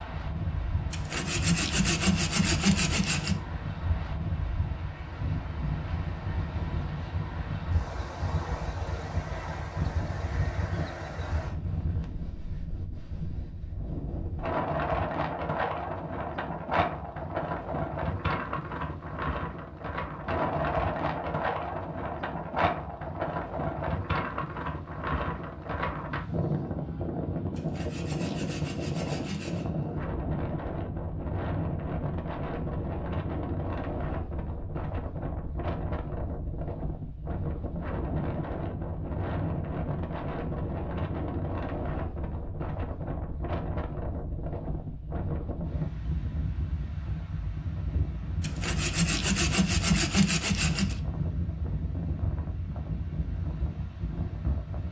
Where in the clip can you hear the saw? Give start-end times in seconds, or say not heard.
0.9-3.4, 27.5-29.6, 48.4-51.0.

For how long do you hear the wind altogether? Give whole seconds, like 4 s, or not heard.
55 s.